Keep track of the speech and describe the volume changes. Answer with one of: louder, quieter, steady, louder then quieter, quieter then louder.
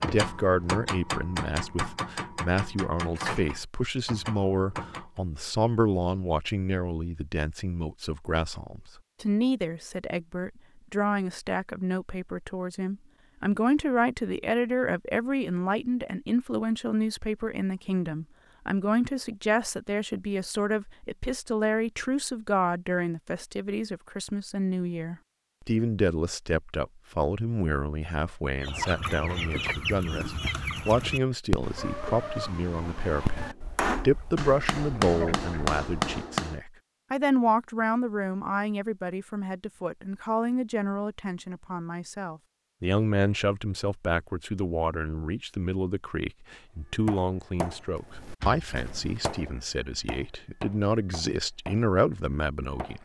steady.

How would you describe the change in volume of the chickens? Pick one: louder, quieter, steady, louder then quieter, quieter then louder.
quieter.